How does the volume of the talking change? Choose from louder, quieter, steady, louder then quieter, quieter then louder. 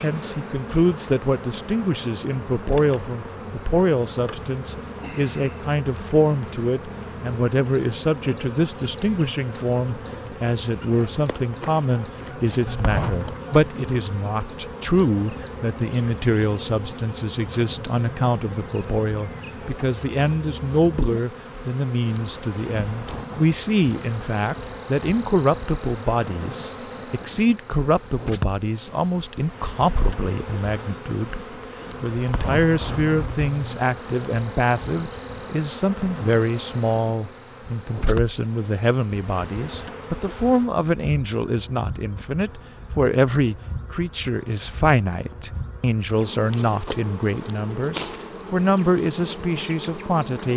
steady.